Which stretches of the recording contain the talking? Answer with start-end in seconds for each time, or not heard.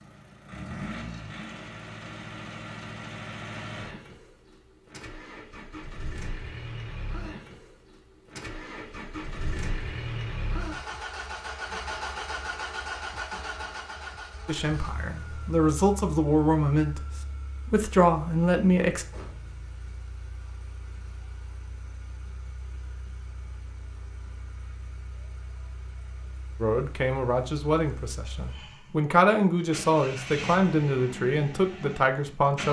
14.4-17.0, 17.6-19.1, 26.6-32.6.